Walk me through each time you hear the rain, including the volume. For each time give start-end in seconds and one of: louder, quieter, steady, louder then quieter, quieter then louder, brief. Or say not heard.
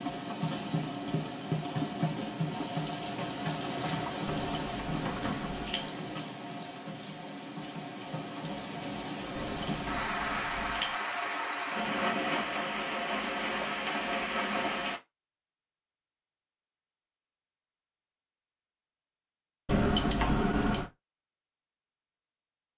0.0-15.0 quieter then louder.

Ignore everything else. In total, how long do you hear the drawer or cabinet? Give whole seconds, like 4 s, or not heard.
2 s.